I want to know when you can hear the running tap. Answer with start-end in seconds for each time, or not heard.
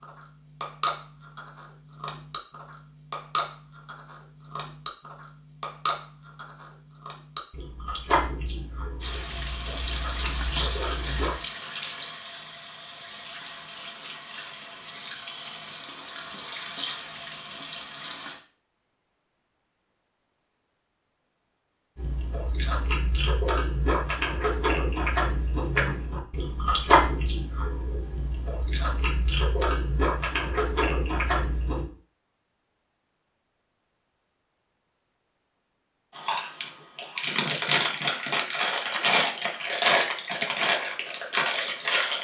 9.0-18.4.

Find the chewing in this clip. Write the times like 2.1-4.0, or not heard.
0.0-11.3, 21.9-31.9, 36.1-42.1.